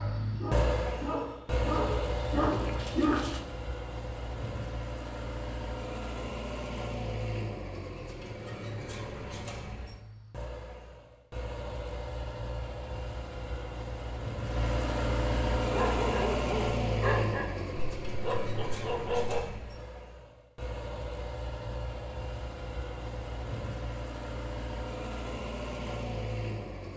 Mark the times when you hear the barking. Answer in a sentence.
The barking can be heard from 0.0 to 3.4 s and from 15.6 to 19.6 s.